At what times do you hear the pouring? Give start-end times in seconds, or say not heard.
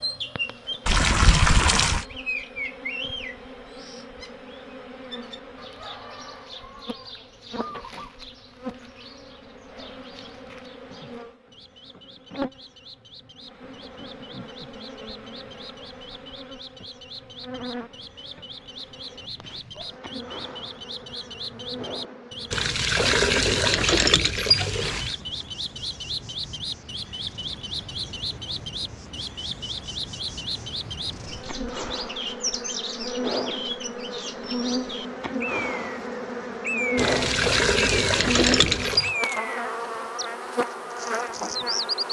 0.8-2.0, 22.5-25.1, 37.0-39.1.